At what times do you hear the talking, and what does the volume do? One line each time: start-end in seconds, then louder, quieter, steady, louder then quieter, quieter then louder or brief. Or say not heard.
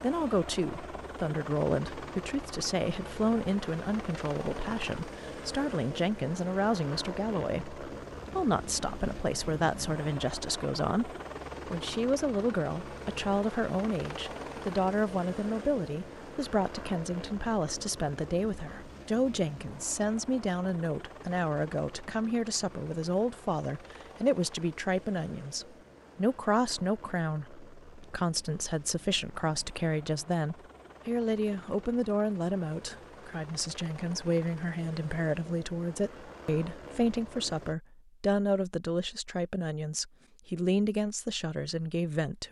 0.0-42.4 steady.